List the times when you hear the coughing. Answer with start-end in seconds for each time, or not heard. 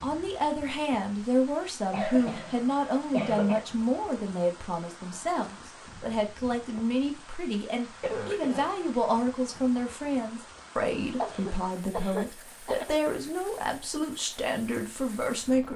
1.6-3.6, 8.0-8.7, 11.2-12.9.